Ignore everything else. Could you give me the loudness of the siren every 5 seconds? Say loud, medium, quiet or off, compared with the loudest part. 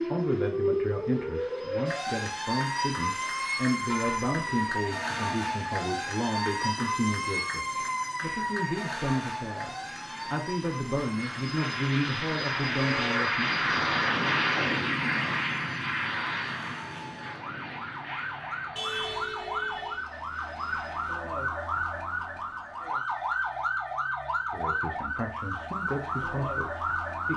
loud, loud, medium, medium, loud, loud.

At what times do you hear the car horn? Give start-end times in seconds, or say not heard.
3.9-4.3, 12.8-13.4, 18.8-20.1.